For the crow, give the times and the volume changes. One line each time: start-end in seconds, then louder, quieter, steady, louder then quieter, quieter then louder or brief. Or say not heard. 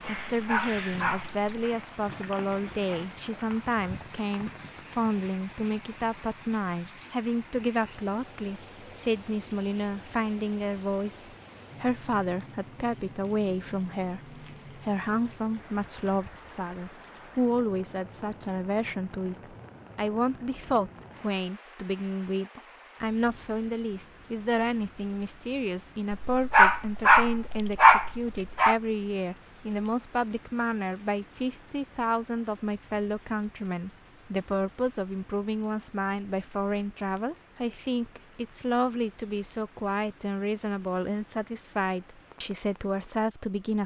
not heard.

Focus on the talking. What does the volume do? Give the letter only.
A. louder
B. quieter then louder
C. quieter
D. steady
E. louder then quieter
D.